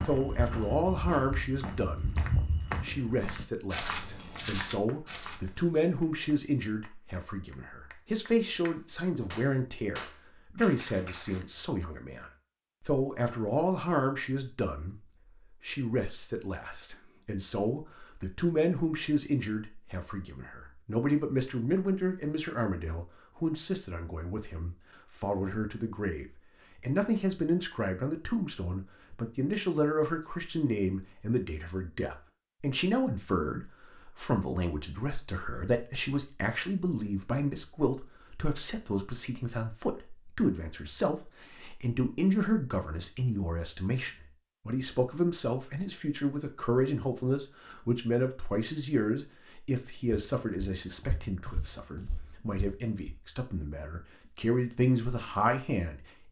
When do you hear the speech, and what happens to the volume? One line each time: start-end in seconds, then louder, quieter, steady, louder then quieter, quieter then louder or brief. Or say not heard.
0.0-56.2 steady.